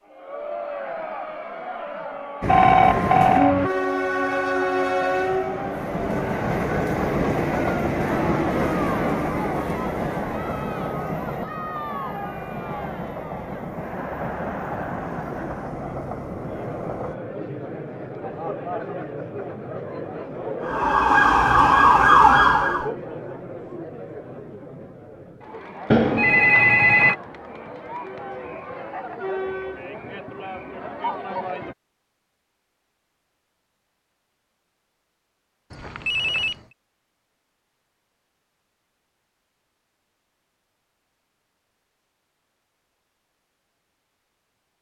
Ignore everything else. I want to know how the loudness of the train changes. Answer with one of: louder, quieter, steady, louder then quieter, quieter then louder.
quieter.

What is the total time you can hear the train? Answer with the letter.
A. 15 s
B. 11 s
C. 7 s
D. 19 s
A.